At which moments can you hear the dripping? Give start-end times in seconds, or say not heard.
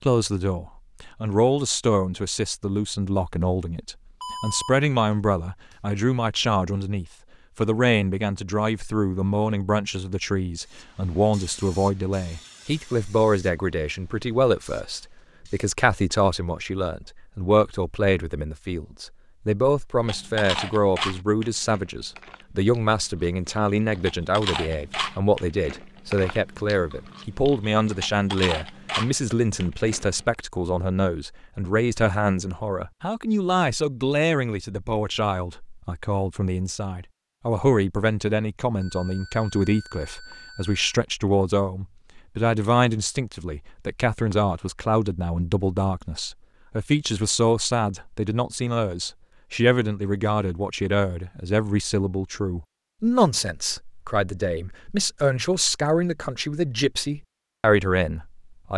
not heard.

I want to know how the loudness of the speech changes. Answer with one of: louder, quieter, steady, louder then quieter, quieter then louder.
steady.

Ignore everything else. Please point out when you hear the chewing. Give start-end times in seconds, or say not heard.
20.1-30.4.